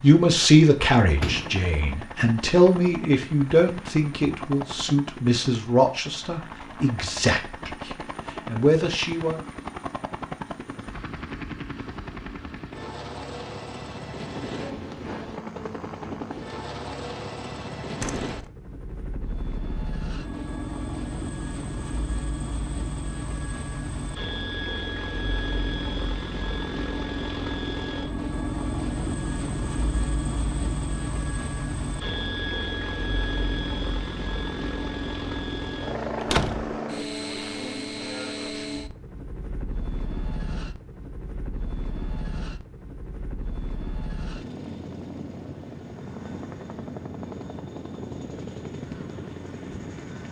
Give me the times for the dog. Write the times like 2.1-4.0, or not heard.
not heard.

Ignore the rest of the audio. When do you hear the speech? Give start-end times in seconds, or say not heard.
0.0-9.4.